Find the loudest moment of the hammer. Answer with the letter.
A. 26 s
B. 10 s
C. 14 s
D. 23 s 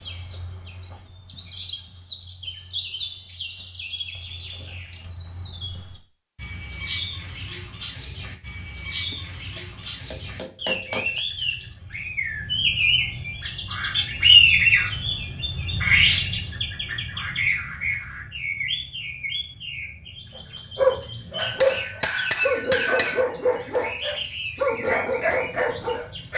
D.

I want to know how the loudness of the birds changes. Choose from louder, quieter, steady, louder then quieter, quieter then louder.
louder then quieter.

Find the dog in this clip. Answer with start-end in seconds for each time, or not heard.
20.4-26.3.